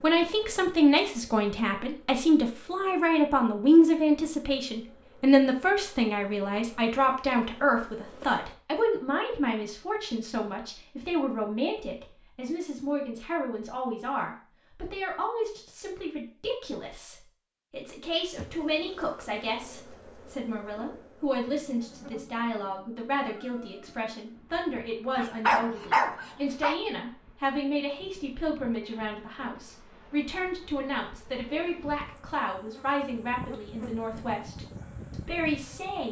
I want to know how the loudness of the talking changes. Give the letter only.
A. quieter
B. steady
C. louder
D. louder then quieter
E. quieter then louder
A.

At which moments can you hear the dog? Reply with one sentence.
You can hear the dog from 25.1 to 26.8 s.